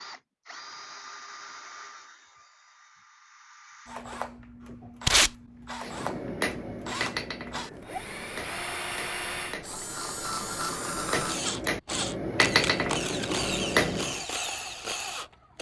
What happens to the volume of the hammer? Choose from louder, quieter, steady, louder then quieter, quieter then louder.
quieter then louder.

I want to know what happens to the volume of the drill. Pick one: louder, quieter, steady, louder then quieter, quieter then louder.
louder.